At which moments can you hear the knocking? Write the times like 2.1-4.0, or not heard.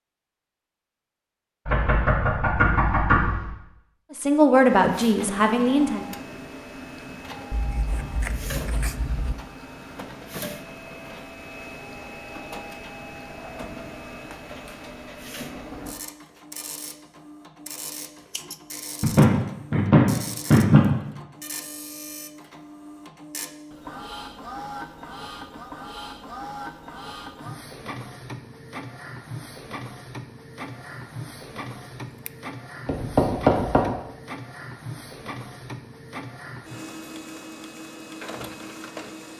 1.6-3.5, 19.0-20.9, 32.9-33.9.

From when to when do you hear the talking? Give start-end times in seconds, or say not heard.
4.1-6.0.